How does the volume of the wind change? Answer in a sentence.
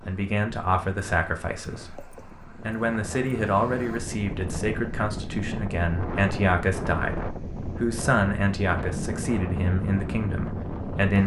The loudness of the wind goes up.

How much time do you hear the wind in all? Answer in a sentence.
You can hear the wind for 11 seconds altogether.